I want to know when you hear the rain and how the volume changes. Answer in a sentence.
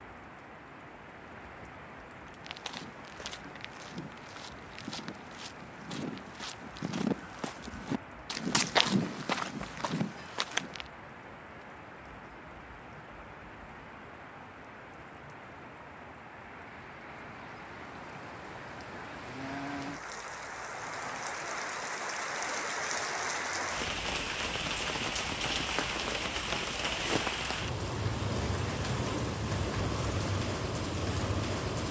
The rain can be heard from 0.0 to 31.8 s, getting louder.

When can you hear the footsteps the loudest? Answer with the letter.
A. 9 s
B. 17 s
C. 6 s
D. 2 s
A.